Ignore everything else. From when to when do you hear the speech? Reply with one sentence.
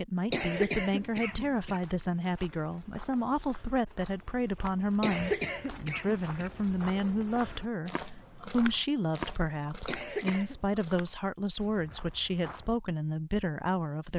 The speech can be heard from 0.0 to 14.1 s.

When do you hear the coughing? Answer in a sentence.
You can hear the coughing from 0.3 to 1.8 s, from 5.0 to 6.5 s and from 9.8 to 10.6 s.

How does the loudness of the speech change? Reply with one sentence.
The volume of the speech stays about the same.